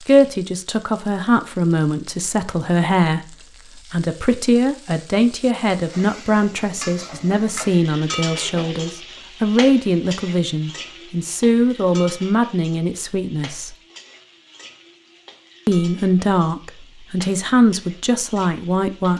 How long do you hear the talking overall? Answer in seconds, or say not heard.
17 s.